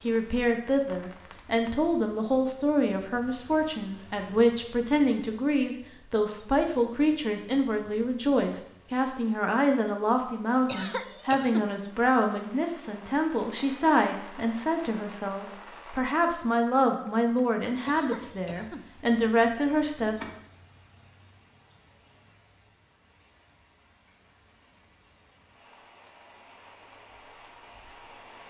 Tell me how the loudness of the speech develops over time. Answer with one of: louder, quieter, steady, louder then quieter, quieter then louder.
steady.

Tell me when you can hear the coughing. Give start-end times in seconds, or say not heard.
10.7-11.7, 17.9-18.9.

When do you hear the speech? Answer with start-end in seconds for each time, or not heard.
0.0-20.2.